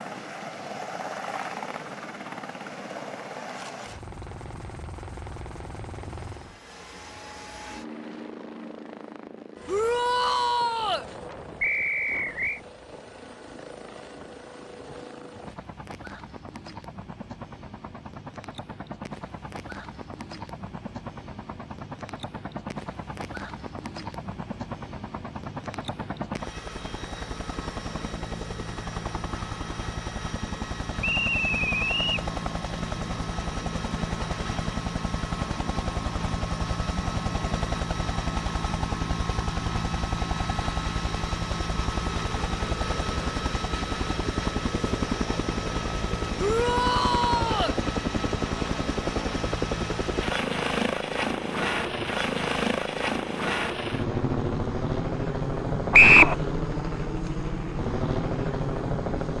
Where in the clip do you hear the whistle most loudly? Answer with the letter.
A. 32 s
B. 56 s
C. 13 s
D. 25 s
B.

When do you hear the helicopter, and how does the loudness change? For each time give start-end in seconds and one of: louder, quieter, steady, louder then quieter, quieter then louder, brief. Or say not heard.
0.0-59.3 louder.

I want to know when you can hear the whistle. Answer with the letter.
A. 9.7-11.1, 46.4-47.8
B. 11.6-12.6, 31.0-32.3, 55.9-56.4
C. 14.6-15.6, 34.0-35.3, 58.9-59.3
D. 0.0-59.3
B.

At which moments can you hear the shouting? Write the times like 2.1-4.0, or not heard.
9.7-11.1, 46.4-47.8.